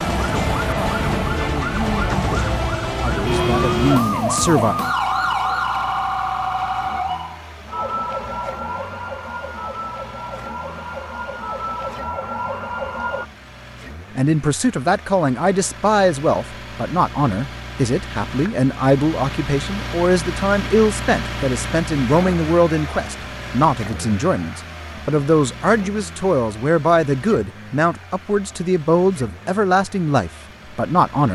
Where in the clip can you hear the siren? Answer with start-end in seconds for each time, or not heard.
0.0-13.2.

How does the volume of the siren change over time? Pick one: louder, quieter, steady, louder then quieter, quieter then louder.
quieter.